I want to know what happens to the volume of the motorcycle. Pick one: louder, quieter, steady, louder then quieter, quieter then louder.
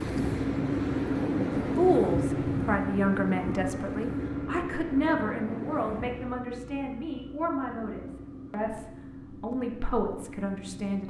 quieter.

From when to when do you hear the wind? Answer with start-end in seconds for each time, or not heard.
0.0-6.5.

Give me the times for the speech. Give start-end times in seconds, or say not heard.
1.8-11.0.